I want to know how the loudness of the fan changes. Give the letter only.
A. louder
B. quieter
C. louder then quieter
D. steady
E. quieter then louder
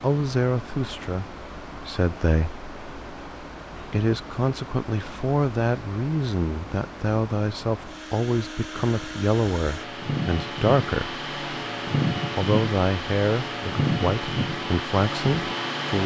A.